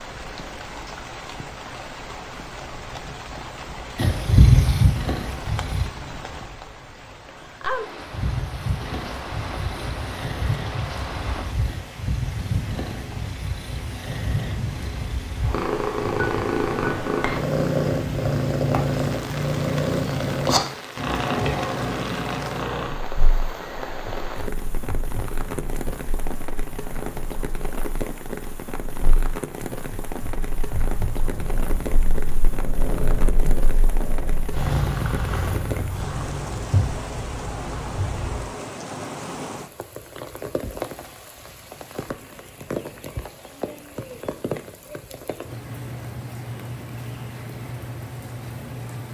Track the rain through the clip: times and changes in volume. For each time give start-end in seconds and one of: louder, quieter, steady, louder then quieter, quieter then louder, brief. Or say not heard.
0.0-49.0 steady.